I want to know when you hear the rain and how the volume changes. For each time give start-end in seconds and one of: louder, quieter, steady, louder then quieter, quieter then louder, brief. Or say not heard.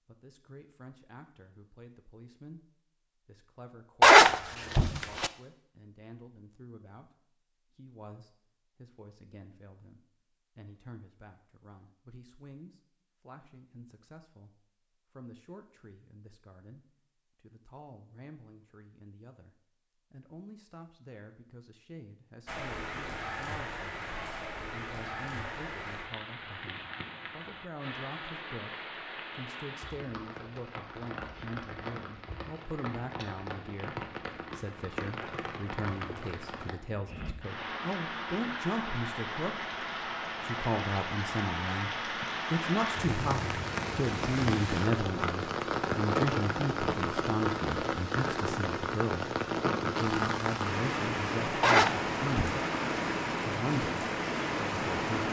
22.4-55.2 louder.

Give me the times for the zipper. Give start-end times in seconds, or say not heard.
4.0-5.3, 51.6-52.6.